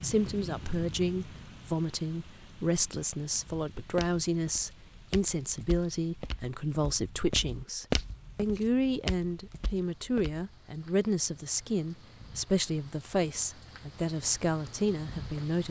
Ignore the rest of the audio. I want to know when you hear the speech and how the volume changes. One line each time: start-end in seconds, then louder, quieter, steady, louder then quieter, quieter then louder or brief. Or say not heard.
0.0-15.6 steady.